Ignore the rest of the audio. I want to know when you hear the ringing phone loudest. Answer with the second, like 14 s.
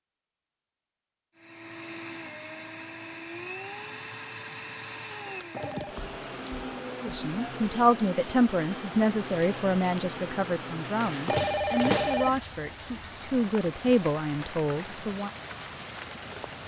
12 s.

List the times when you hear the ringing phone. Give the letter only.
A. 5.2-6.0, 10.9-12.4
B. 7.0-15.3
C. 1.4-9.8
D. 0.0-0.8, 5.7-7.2
A.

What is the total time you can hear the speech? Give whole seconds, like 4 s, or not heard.
8 s.